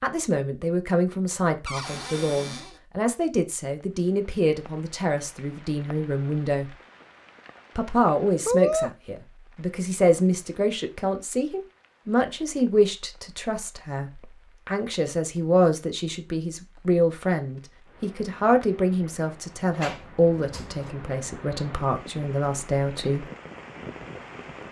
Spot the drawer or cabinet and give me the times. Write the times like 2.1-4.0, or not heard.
1.6-2.8, 19.7-20.9.